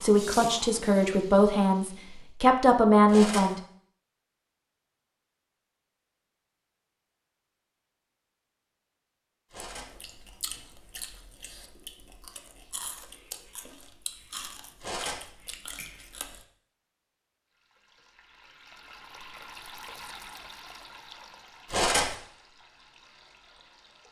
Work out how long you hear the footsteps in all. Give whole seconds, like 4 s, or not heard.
not heard.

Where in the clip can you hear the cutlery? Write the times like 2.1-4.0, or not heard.
3.0-3.5, 9.5-9.9, 14.8-15.2, 21.7-22.1.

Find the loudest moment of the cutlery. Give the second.
22 s.